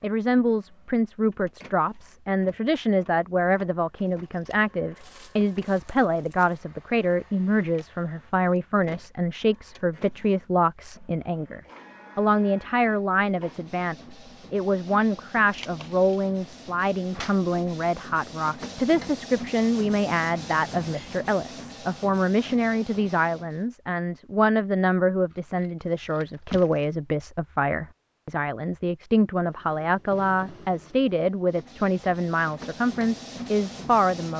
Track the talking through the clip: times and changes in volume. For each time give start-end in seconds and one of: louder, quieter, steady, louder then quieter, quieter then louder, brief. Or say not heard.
0.0-34.3 steady.